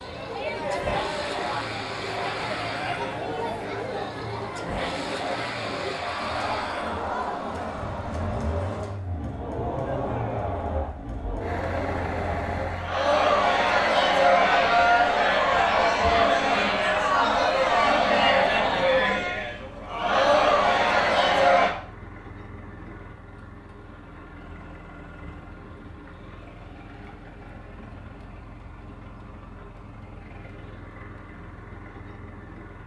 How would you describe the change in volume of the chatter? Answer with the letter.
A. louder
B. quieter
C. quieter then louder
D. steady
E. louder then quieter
A.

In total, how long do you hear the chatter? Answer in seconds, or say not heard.
22 s.